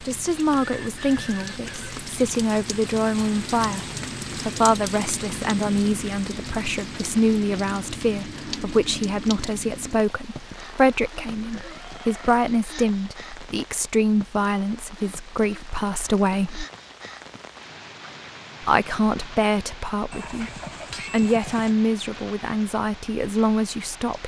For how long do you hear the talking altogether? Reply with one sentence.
You can hear the talking for 22 seconds altogether.